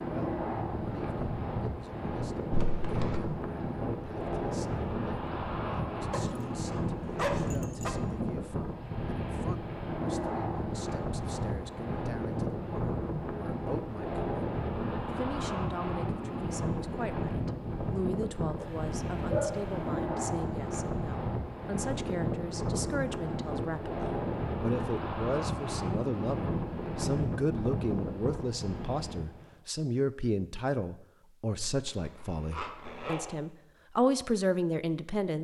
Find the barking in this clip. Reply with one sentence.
The barking can be heard from 6.1 to 7.9 s and from 18.6 to 19.6 s.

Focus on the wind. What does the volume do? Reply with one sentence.
The loudness of the wind stays about the same.